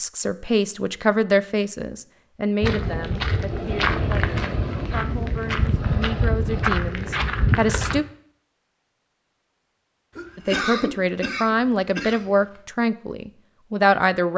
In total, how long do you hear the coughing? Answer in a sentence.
You can hear the coughing for 2 seconds altogether.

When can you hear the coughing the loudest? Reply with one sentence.
The volume of the coughing peaks at 11 seconds.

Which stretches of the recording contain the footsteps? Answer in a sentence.
You can hear the footsteps from 2.6 to 8.0 s.